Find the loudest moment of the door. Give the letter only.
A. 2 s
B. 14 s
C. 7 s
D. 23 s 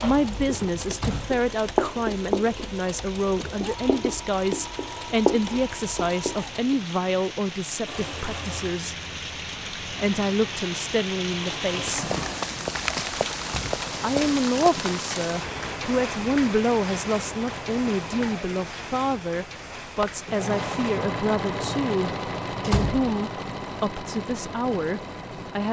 D.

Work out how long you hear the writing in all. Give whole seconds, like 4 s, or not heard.
7 s.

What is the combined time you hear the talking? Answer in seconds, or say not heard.
23 s.